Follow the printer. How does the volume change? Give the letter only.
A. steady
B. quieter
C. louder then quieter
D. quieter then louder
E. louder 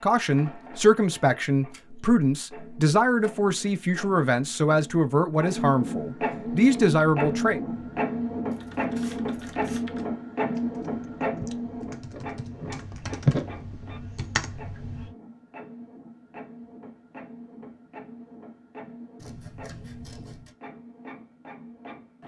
C.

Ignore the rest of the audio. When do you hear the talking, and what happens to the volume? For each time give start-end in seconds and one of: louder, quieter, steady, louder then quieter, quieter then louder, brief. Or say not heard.
0.0-7.6 steady.